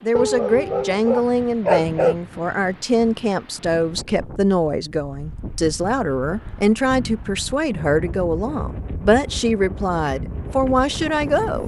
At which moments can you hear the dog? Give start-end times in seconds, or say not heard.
0.1-2.1.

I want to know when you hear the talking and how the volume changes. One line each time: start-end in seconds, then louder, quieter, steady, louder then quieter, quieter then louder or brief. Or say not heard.
0.0-11.6 steady.